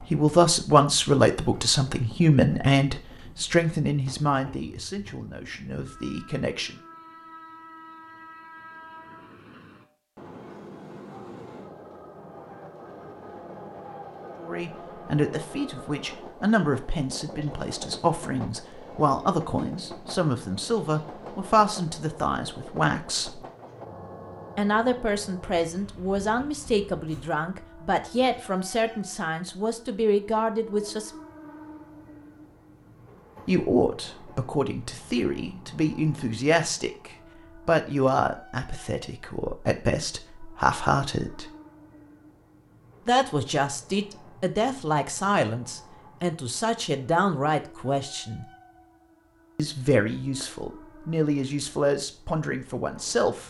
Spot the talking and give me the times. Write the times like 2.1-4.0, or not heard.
0.1-6.8, 14.4-23.4, 24.6-31.1, 33.5-41.5, 43.0-48.5, 49.5-53.4.